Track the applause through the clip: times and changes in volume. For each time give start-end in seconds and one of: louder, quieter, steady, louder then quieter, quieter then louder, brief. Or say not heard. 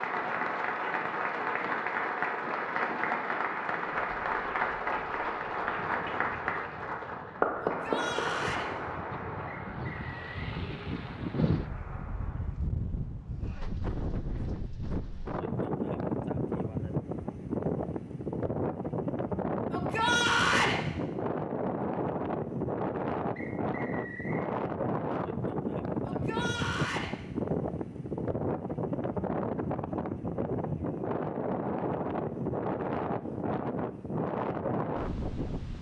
0.0-12.6 quieter.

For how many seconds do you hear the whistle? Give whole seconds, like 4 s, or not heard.
2 s.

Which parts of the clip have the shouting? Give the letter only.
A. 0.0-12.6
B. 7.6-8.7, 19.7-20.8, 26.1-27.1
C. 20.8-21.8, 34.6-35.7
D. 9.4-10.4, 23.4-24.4
B.